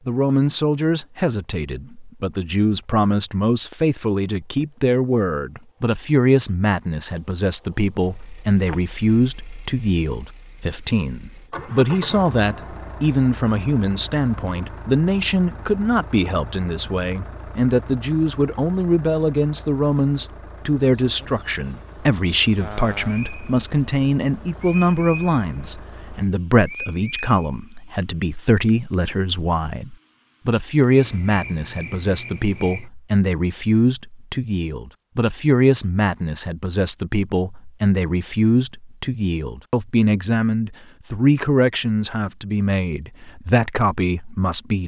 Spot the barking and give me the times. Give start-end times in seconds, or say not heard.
not heard.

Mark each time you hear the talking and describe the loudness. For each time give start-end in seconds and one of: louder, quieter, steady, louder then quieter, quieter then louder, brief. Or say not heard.
0.1-44.8 steady.